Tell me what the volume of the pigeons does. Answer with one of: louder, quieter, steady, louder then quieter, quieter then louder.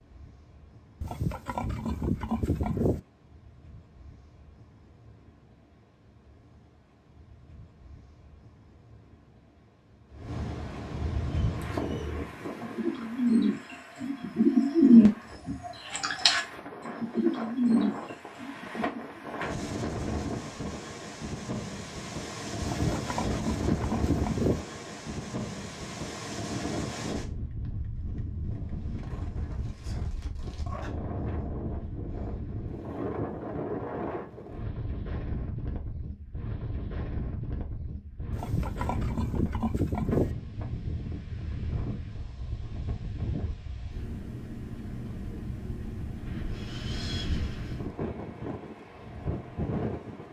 louder then quieter.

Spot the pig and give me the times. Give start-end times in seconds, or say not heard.
1.0-3.0, 22.6-24.6, 38.3-40.4.